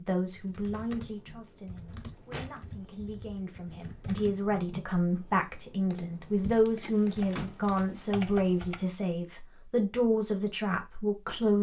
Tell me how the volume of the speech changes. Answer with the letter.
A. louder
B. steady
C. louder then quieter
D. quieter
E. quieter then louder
A.